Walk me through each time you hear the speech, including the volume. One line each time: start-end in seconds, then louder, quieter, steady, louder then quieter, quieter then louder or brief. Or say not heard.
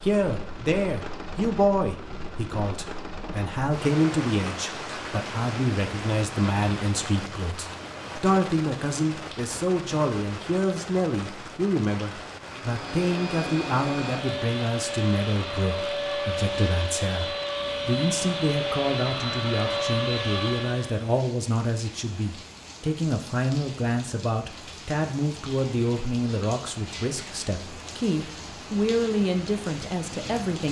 0.0-30.6 steady.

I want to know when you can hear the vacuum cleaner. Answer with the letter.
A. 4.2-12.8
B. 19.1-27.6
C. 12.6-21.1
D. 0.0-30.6
C.